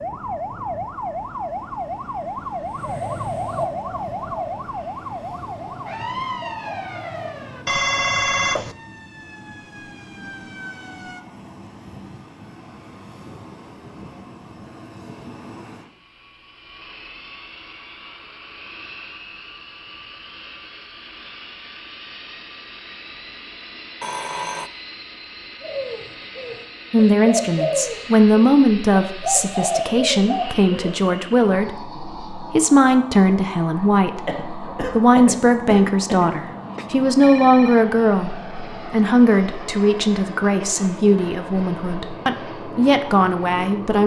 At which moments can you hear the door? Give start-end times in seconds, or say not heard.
not heard.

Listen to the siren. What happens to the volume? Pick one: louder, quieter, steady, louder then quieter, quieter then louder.
quieter.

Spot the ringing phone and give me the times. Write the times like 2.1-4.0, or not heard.
7.7-8.8, 24.0-24.7, 36.8-37.9.